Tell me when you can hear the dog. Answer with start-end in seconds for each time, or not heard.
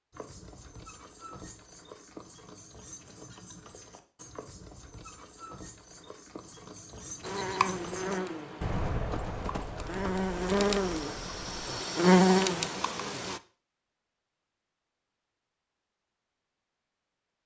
not heard.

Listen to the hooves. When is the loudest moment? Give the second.
9 s.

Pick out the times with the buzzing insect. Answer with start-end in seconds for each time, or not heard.
7.2-13.4.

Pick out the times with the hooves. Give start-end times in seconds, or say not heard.
0.1-11.7.